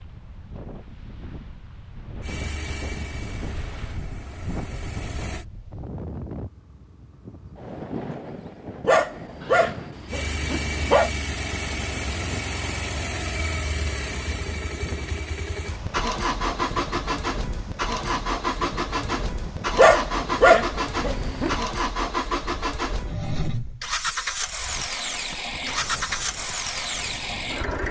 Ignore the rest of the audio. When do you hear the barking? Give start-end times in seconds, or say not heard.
8.8-11.1, 19.8-21.6.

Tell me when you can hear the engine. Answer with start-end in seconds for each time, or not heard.
2.2-5.5, 10.1-27.8.